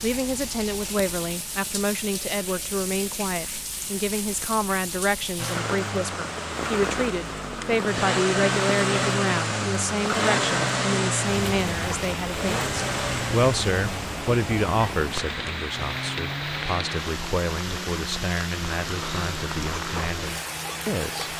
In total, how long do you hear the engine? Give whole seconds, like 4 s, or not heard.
16 s.